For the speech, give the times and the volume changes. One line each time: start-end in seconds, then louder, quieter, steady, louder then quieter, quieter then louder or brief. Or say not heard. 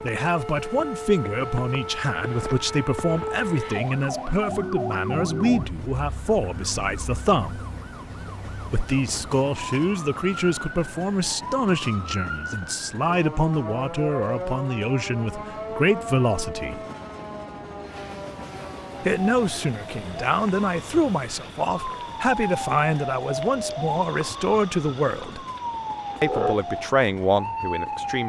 0.0-7.6 steady
8.7-16.8 steady
19.0-25.4 steady
26.2-28.2 brief.